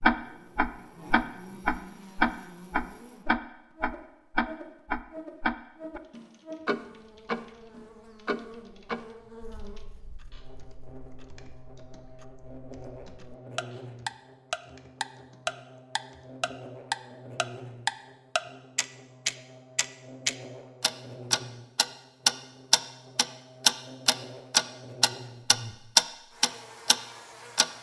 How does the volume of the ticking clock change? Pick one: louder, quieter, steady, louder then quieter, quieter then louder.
quieter then louder.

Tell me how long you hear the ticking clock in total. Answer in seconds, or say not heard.
27 s.